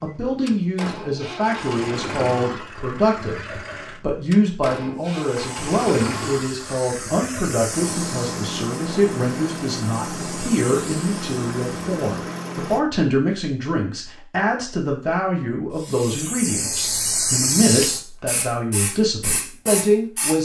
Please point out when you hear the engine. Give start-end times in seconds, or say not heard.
0.0-12.8.